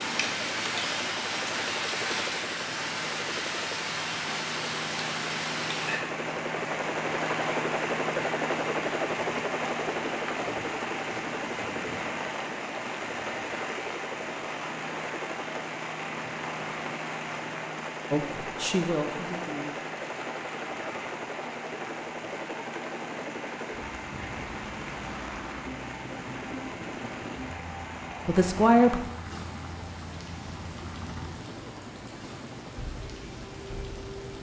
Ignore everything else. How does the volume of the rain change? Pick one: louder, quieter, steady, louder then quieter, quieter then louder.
quieter.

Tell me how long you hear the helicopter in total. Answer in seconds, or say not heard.
34 s.